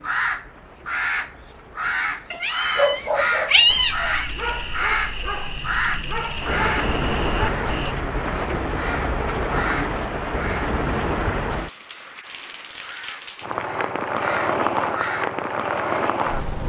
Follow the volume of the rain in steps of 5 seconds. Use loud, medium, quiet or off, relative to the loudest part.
quiet, loud, loud, loud.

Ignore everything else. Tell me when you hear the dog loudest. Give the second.
3 s.